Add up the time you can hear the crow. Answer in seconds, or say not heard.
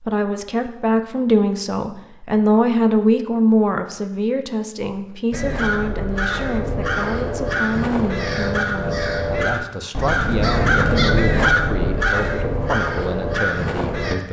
9 s.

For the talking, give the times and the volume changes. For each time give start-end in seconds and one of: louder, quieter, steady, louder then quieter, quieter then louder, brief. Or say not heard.
0.0-14.2 quieter.